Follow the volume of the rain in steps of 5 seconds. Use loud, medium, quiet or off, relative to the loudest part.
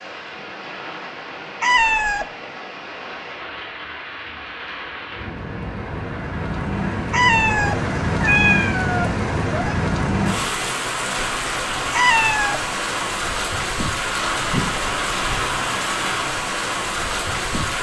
medium, loud, loud, loud.